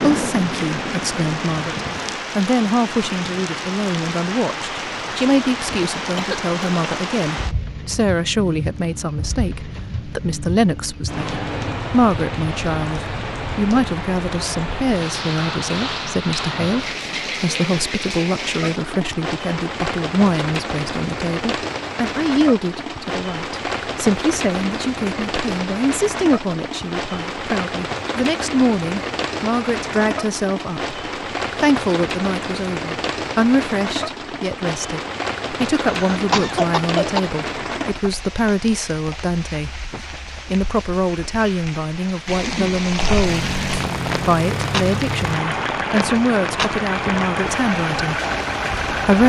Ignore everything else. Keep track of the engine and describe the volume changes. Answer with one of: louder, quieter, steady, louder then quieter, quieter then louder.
steady.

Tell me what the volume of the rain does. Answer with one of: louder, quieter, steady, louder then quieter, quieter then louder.
steady.